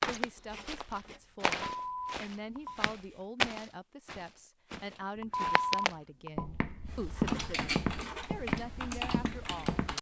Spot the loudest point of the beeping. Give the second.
6 s.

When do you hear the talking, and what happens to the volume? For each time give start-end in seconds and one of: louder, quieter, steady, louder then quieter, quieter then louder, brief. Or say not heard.
0.0-9.8 steady.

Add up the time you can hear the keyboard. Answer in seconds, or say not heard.
3 s.